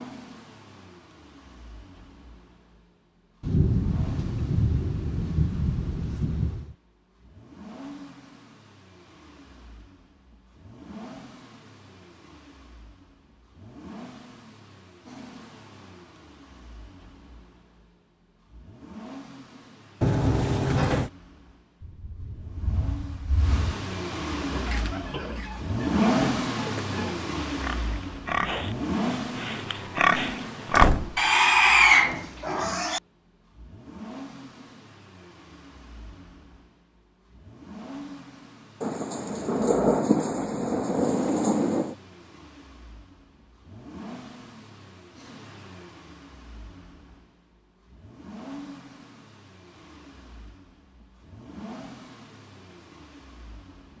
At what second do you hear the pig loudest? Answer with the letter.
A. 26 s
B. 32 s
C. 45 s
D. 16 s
B.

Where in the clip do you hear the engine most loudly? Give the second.
26 s.